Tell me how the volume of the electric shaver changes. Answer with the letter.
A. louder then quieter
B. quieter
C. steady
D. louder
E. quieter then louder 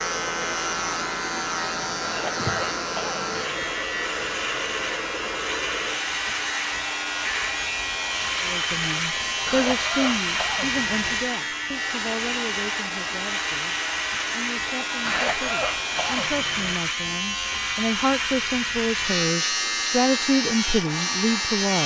C.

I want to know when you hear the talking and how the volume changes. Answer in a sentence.
The talking can be heard from 8.4 to 21.8 s, getting quieter then louder.